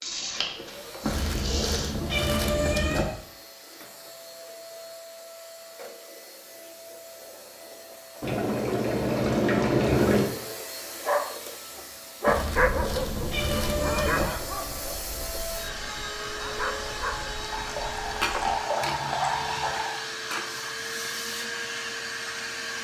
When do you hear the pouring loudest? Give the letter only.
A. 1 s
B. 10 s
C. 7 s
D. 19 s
B.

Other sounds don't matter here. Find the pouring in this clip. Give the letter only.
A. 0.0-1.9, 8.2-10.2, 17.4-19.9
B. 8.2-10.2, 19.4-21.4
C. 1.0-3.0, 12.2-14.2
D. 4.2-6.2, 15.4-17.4
A.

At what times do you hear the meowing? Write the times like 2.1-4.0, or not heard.
1.0-3.0, 12.2-14.2.